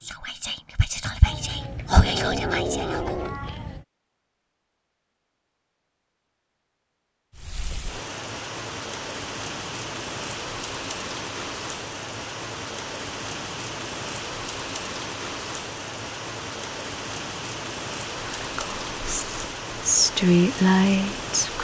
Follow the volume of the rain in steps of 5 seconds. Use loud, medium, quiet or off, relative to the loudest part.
off, loud, loud, loud, loud.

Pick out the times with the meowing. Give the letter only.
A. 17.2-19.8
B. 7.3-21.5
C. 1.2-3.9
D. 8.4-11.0
C.